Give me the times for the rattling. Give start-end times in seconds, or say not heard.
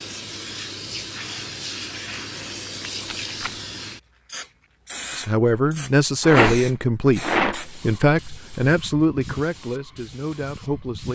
2.8-3.5, 6.2-8.1.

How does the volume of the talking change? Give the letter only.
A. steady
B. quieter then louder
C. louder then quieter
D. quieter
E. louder
D.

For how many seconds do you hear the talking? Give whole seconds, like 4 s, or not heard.
6 s.